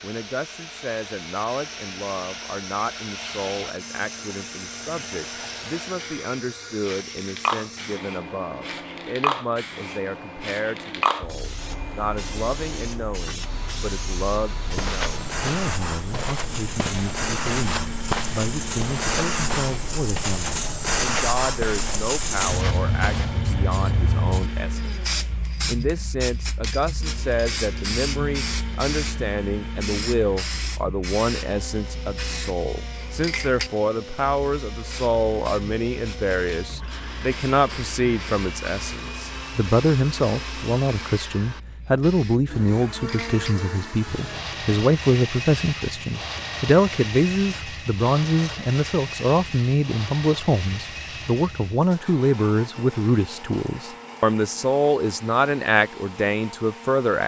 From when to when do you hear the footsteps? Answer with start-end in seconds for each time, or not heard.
14.6-23.4.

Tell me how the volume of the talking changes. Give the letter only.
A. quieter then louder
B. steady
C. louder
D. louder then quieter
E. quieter
C.